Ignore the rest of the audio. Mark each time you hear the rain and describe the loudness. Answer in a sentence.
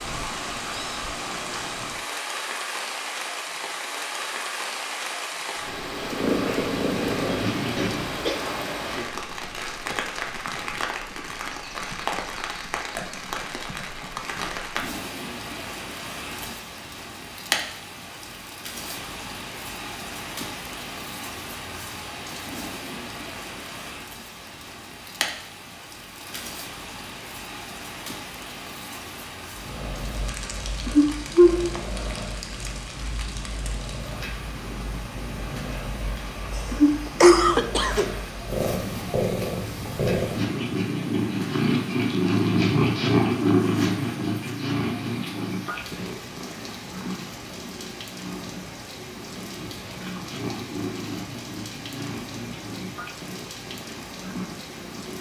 You can hear the rain from 0.0 to 55.1 s, getting quieter.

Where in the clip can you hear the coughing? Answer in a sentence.
The coughing can be heard from 7.8 to 8.4 s and from 36.5 to 38.1 s.